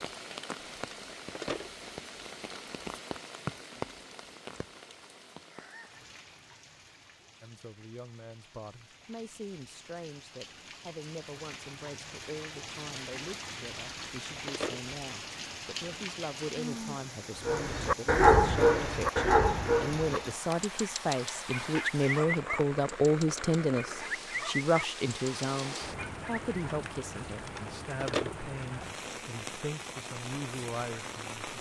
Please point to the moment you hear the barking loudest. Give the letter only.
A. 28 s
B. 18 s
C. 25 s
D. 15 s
B.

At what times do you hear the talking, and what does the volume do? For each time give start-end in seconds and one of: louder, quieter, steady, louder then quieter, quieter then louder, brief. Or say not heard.
7.4-31.5 louder then quieter.